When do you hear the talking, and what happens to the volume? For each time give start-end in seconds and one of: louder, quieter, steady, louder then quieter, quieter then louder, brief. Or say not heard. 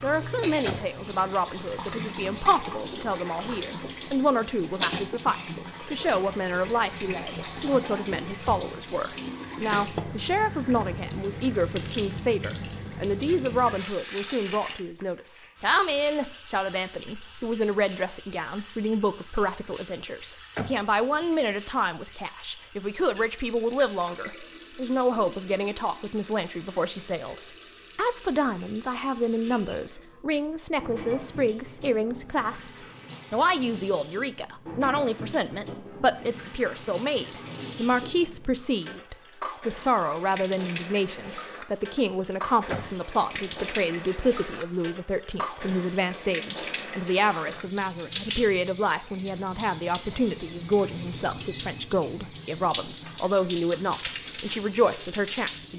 0.0-55.7 steady.